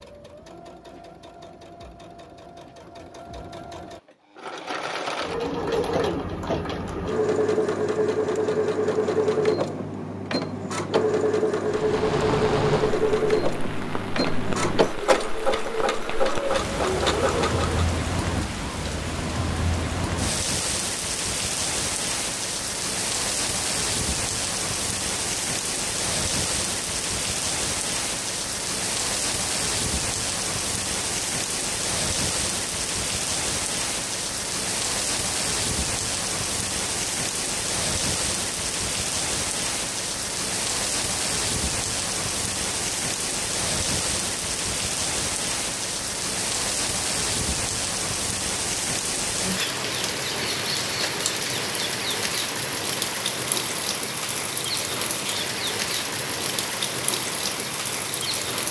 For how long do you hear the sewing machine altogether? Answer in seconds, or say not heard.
18 s.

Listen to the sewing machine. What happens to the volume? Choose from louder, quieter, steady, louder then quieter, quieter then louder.
louder.